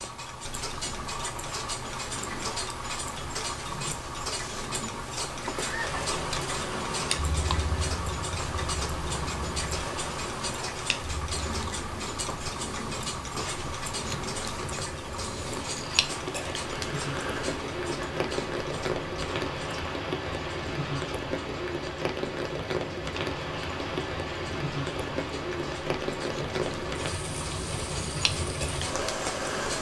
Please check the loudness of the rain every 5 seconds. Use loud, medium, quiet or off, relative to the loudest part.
off, loud, medium, loud, loud, loud.